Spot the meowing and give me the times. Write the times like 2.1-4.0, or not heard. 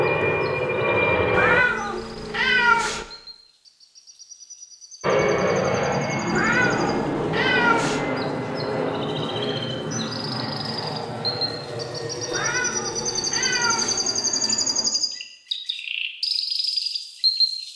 1.3-3.0, 6.3-8.1, 12.3-14.0.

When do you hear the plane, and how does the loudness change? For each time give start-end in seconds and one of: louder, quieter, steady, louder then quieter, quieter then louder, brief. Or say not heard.
0.0-1.6 brief
5.0-14.9 quieter.